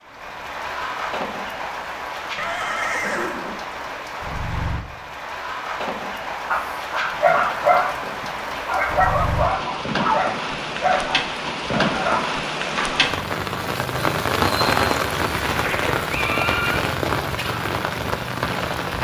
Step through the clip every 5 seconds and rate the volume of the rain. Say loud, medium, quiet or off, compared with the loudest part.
medium, medium, loud, loud.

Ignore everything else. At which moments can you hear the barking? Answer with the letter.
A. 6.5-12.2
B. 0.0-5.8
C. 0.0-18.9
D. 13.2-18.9
A.